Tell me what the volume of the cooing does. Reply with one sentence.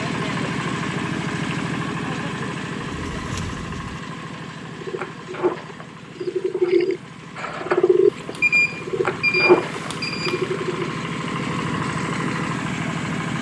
The loudness of the cooing goes up.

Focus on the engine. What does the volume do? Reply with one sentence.
The volume of the engine goes down, then up.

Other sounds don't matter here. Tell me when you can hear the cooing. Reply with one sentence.
The cooing can be heard from 2.8 to 10.9 s.